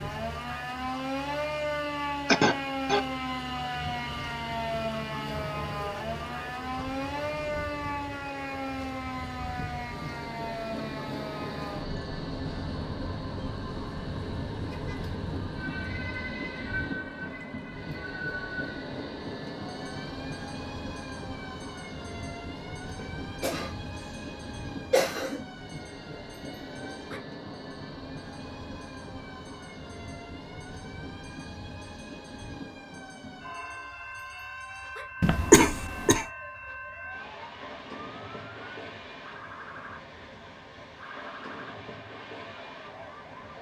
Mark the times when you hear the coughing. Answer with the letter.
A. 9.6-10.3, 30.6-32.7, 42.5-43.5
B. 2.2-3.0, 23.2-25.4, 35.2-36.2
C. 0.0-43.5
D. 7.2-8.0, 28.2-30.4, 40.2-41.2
B.